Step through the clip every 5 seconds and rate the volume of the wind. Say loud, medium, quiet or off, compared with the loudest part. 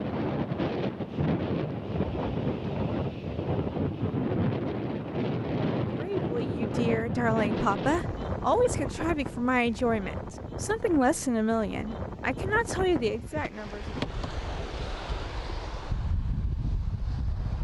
loud, loud, medium, medium.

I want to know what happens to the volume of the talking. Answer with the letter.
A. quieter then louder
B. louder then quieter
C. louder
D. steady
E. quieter
D.